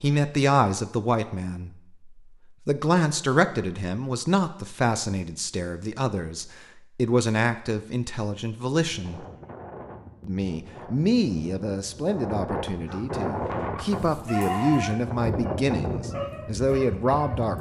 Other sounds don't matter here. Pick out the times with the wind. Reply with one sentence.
The wind can be heard from 8.9 to 17.5 s.